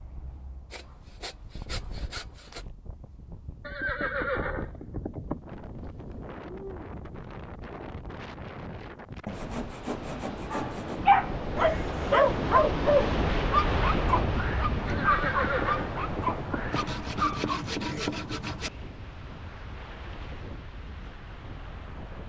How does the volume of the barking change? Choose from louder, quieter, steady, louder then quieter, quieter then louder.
quieter.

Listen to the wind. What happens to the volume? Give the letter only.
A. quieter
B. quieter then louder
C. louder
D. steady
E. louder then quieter
E.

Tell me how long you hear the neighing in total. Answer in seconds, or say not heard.
4 s.